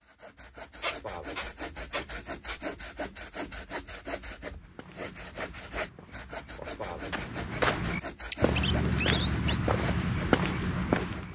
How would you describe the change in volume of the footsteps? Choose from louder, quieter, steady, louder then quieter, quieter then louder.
louder.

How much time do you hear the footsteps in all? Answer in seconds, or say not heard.
7 s.